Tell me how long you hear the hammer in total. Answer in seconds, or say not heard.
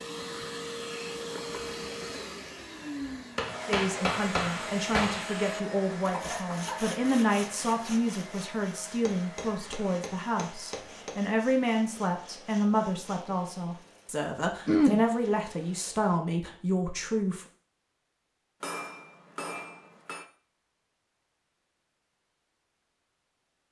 6 s.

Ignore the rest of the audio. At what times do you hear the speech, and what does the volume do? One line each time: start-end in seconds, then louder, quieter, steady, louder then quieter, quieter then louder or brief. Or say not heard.
3.6-17.4 steady.